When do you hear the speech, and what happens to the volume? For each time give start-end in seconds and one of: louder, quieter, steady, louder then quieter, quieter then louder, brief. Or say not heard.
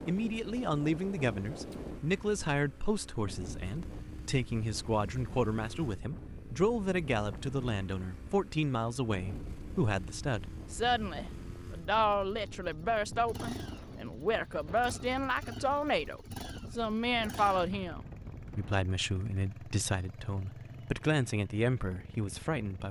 0.1-22.8 steady.